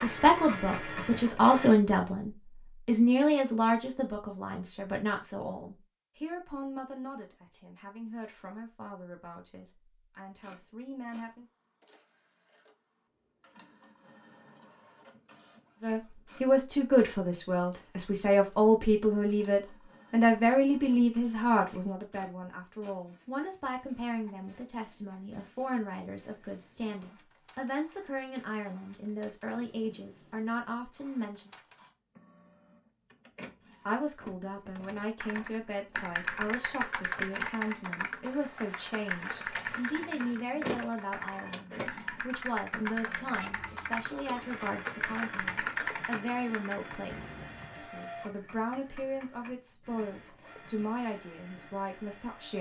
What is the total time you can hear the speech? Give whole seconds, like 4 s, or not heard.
46 s.